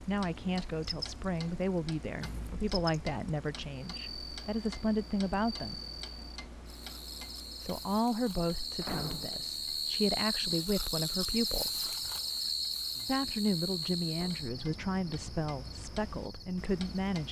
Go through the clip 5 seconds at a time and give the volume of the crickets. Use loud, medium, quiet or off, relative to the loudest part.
medium, medium, loud, quiet.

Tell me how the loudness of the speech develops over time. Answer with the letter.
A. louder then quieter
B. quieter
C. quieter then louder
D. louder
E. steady
E.